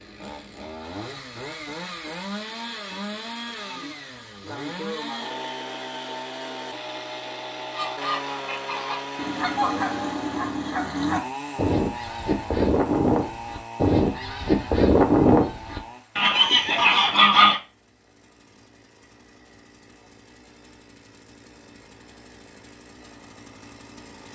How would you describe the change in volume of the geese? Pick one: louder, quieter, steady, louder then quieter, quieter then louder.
louder.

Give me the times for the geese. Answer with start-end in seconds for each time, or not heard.
7.7-17.6.